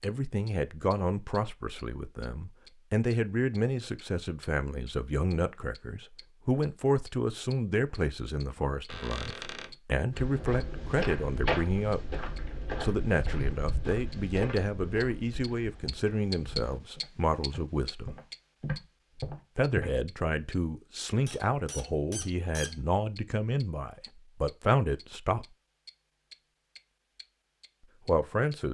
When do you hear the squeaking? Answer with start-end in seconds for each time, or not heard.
8.8-9.8, 21.2-22.8.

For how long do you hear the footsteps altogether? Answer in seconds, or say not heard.
10 s.